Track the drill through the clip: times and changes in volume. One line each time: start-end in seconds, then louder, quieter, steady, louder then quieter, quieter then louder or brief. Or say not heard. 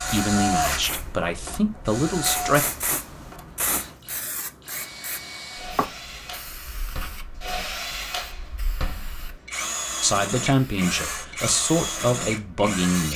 0.0-13.1 quieter then louder.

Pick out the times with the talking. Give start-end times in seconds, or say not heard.
0.1-2.6, 10.0-13.1.